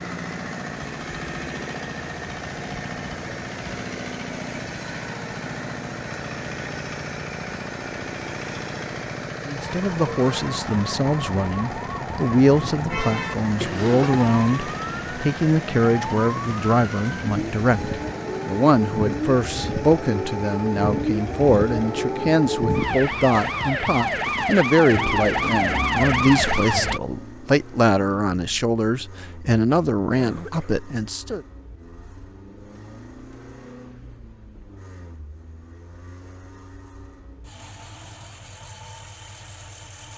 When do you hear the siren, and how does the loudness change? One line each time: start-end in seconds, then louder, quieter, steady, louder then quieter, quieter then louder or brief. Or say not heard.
9.6-27.0 louder.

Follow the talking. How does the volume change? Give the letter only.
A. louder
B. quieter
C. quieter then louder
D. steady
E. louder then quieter
D.